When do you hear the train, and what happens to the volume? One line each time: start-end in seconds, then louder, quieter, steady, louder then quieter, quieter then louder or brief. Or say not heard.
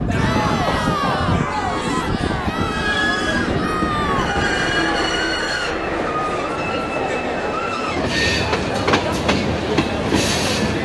0.0-10.8 steady.